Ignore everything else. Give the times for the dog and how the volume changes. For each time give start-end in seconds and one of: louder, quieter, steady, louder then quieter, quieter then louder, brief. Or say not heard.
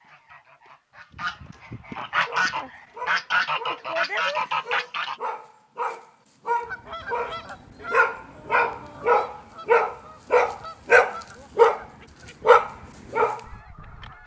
2.2-11.8 louder
12.4-13.4 brief.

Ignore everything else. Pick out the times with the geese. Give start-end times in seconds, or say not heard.
0.0-5.2, 6.7-14.2.